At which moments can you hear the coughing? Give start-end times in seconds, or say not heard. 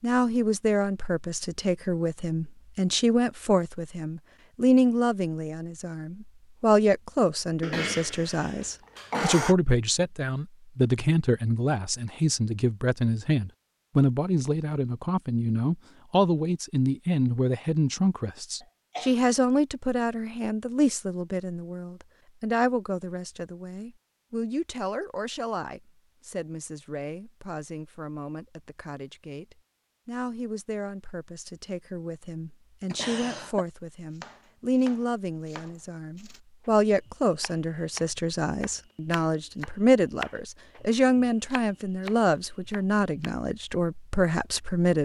7.6-9.6, 18.6-19.1, 32.9-33.6.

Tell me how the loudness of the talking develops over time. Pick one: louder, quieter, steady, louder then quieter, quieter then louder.
quieter then louder.